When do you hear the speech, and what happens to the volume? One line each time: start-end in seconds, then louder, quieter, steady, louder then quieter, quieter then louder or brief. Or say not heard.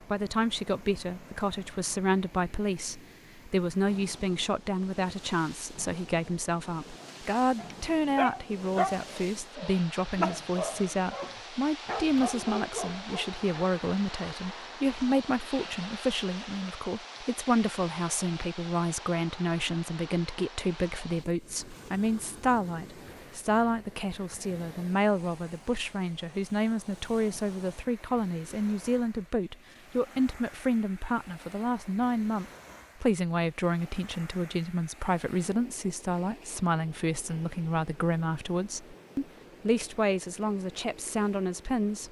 0.1-42.0 steady.